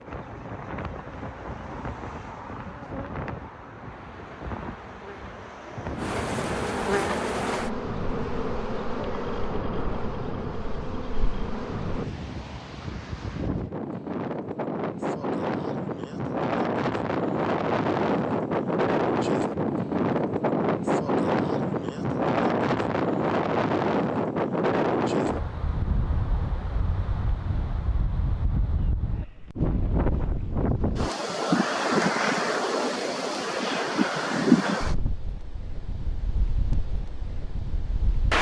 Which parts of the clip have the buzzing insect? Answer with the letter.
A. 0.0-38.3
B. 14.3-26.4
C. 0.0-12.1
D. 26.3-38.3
C.